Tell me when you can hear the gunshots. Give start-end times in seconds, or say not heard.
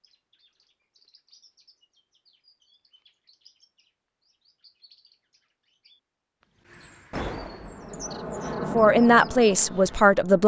7.1-8.1.